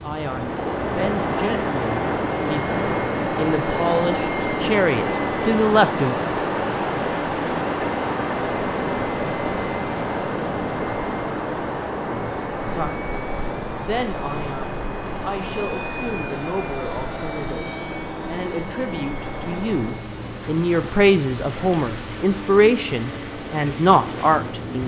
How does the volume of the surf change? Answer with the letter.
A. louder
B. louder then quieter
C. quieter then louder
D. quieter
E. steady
D.